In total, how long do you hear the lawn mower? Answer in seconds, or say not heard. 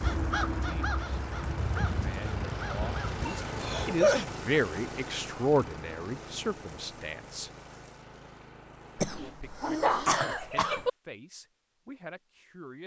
9 s.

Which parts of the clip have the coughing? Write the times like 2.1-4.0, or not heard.
3.2-4.2, 8.9-10.9.